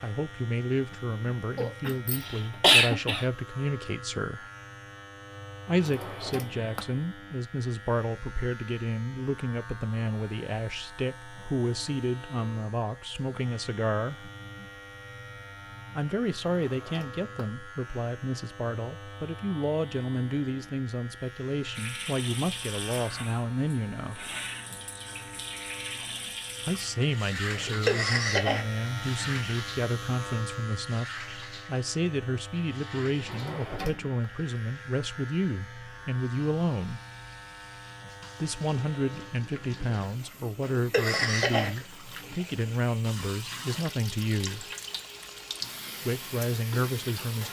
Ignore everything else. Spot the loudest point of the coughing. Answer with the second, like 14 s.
3 s.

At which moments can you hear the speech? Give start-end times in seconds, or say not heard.
0.0-4.5, 5.7-14.3, 15.9-24.4, 26.6-37.0, 38.4-44.7, 46.0-47.4.